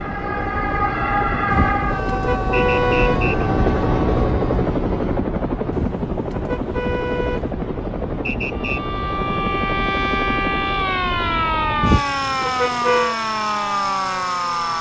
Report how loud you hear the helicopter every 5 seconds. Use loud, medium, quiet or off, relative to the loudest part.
loud, loud, medium.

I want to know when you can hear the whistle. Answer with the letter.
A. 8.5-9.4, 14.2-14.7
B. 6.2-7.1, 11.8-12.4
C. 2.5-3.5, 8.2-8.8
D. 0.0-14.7
C.